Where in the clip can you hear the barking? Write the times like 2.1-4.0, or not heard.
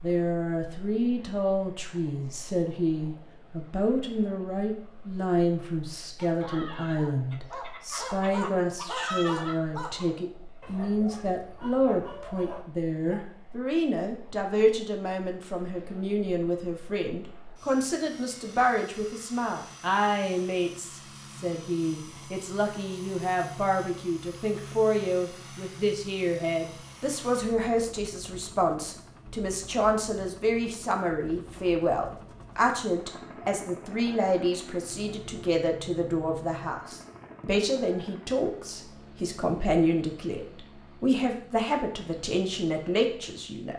6.2-13.2.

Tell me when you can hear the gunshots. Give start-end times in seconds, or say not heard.
not heard.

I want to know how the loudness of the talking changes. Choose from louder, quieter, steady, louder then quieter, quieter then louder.
steady.